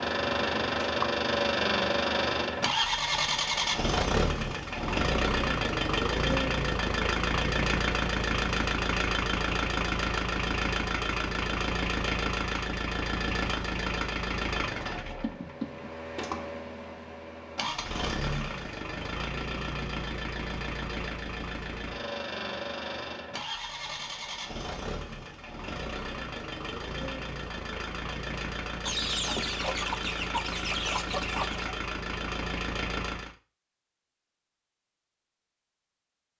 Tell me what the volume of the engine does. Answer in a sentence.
The volume of the engine goes down.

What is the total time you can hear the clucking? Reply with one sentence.
The clucking can be heard for 3 seconds in total.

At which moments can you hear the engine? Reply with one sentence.
The engine can be heard from 0.0 to 33.4 s.